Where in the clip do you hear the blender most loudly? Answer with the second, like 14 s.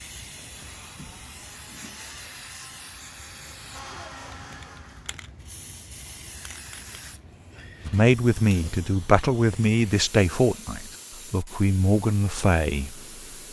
4 s.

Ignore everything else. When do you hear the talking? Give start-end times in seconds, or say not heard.
7.8-13.0.